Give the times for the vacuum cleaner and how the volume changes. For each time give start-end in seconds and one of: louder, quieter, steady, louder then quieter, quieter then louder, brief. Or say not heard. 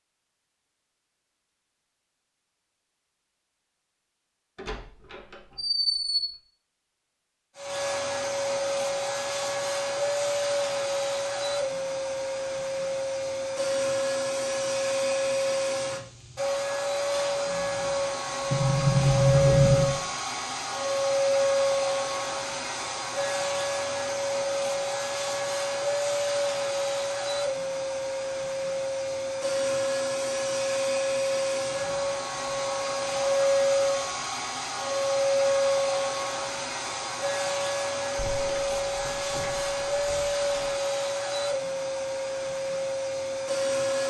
7.5-44.0 steady.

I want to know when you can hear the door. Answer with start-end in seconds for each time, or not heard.
4.5-6.3, 18.5-20.0, 38.1-40.8.